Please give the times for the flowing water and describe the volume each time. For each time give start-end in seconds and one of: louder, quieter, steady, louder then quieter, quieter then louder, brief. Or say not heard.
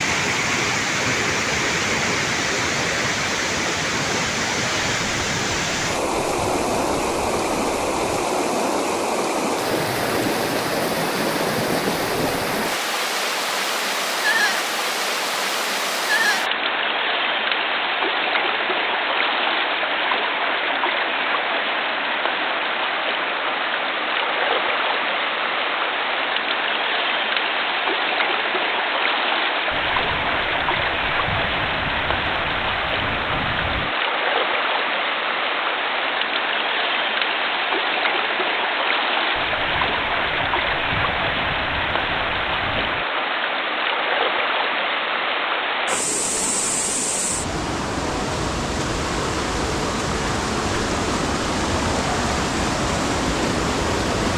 0.0-54.3 steady.